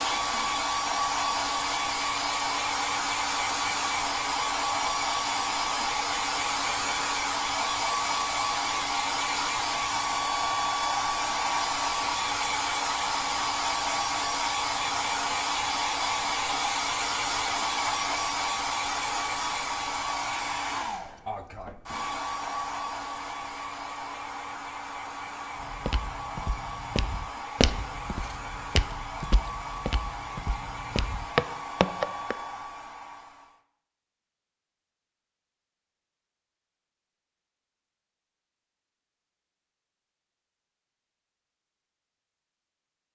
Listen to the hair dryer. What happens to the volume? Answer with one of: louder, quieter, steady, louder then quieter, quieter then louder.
quieter.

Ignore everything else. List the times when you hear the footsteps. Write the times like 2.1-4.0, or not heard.
25.6-32.4.